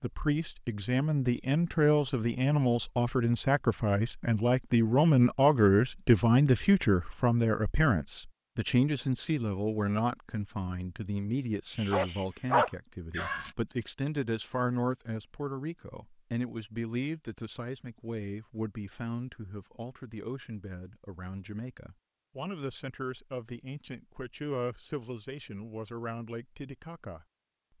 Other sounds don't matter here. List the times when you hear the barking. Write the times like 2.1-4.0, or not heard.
11.8-13.5.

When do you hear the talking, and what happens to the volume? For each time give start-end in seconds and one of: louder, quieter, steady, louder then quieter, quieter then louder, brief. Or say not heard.
0.0-27.2 quieter.